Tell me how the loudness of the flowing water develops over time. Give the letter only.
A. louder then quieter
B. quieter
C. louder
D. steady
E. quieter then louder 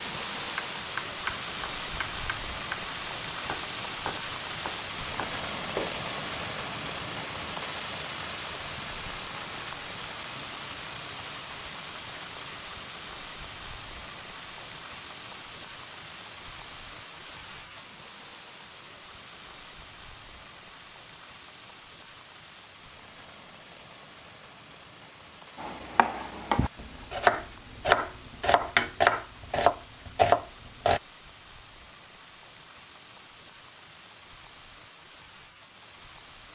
B.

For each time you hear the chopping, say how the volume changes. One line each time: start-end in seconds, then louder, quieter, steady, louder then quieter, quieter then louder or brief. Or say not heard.
0.6-5.9 quieter
25.6-31.0 louder.